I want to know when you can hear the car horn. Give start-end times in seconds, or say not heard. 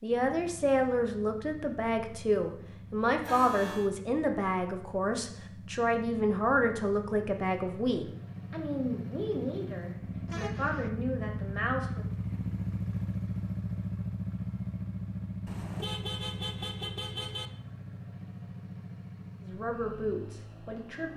3.2-3.9, 10.2-10.9, 15.4-17.5.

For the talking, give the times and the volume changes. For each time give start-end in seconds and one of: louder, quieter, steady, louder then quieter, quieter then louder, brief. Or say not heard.
0.0-12.1 quieter
19.4-21.1 brief.